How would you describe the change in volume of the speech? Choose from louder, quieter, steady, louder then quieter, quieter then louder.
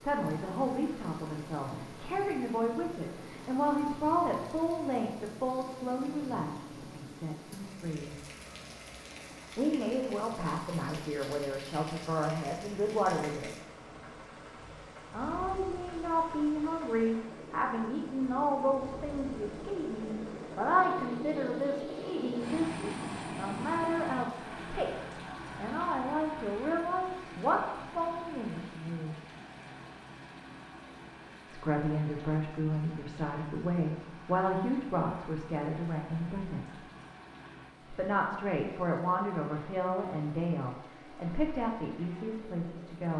steady.